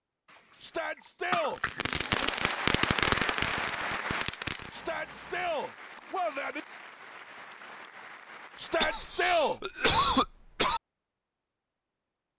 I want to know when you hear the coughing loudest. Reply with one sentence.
The loudest moment of the coughing is at 10 seconds.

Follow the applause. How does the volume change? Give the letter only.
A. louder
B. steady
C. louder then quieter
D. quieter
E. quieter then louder
D.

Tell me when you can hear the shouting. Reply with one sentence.
The shouting can be heard from 0.6 to 1.6 s, from 4.7 to 6.6 s and from 8.6 to 9.6 s.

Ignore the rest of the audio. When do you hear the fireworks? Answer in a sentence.
The fireworks can be heard from 1.6 to 4.7 s.